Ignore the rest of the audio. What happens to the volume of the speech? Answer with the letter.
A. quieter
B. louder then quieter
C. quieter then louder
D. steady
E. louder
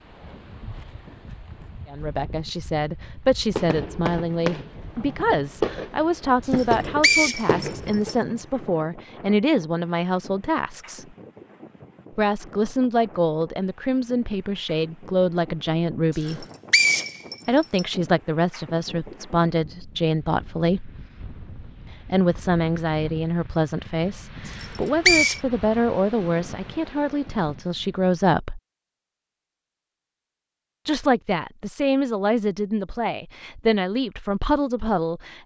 D.